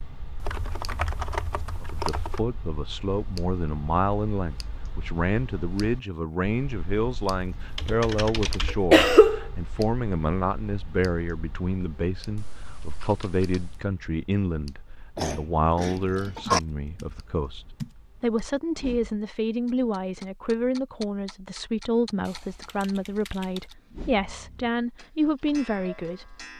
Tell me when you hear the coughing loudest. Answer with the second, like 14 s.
9 s.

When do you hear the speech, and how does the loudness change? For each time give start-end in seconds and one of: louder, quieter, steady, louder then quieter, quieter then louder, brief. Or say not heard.
1.8-26.4 steady.